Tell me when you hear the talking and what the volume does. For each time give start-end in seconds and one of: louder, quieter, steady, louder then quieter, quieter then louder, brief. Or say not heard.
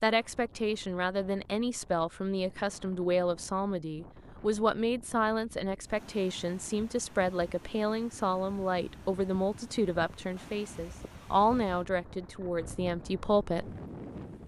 0.0-13.7 steady.